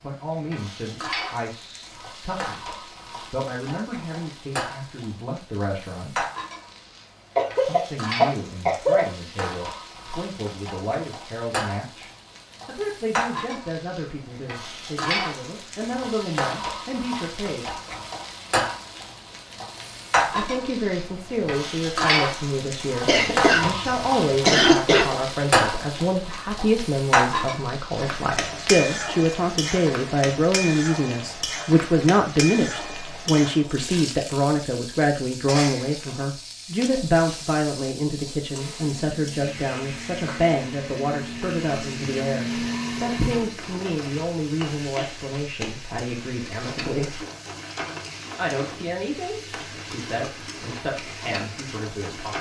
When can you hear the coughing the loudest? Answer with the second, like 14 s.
25 s.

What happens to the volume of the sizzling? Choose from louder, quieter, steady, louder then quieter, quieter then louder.
louder then quieter.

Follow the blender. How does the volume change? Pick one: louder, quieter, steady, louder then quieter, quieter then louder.
louder.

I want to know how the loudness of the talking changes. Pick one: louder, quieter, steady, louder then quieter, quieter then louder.
louder then quieter.